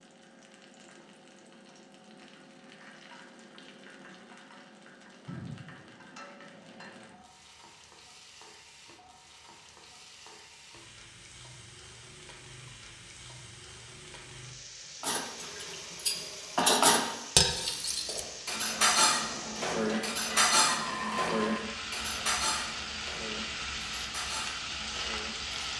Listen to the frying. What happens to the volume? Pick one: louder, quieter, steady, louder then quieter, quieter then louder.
louder.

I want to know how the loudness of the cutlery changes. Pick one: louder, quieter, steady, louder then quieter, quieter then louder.
quieter.